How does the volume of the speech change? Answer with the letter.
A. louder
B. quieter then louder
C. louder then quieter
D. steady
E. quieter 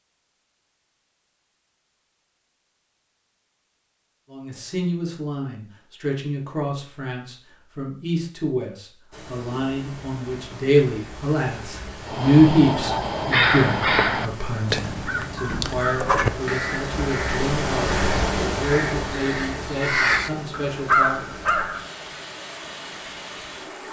C.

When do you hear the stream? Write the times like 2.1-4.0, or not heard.
9.1-23.8.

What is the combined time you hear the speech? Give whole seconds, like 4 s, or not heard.
17 s.